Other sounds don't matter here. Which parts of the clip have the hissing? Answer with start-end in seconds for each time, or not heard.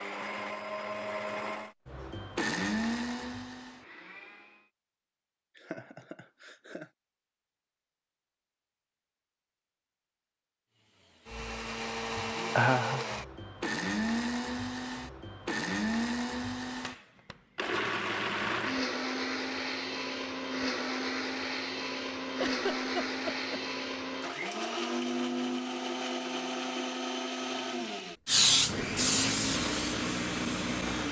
28.2-31.0.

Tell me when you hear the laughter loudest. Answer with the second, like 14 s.
13 s.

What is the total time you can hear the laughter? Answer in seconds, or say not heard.
3 s.